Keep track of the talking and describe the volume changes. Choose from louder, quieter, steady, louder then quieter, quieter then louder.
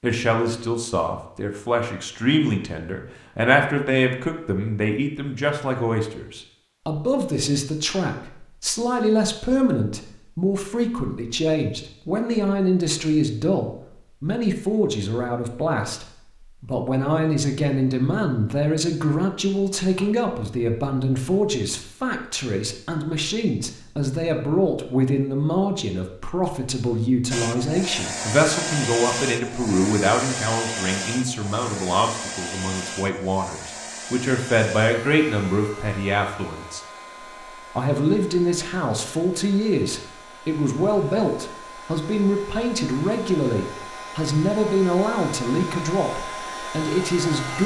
steady.